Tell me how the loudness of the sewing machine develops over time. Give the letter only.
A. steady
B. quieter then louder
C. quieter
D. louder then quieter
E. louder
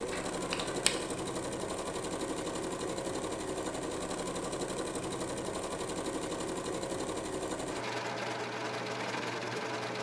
A.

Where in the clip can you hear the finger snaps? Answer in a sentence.
The finger snaps can be heard from 0.1 to 0.9 s.